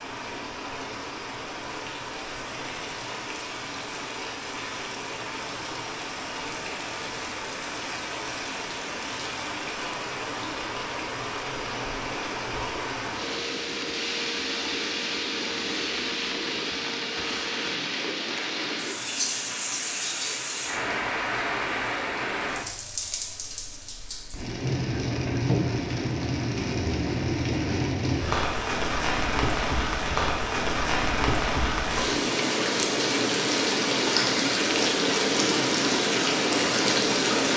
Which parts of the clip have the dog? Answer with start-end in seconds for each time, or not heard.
not heard.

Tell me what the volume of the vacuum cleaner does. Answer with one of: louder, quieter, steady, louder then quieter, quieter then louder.
steady.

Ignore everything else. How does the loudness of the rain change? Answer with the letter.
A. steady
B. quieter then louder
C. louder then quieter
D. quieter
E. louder
E.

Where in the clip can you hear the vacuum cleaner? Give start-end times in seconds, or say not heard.
13.2-17.6.